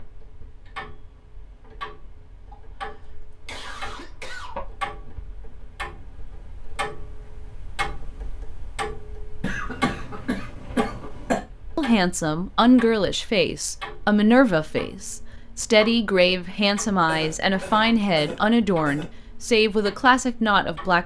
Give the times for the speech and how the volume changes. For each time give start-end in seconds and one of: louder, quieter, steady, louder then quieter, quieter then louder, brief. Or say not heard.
11.8-21.0 steady.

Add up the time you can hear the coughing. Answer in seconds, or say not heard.
6 s.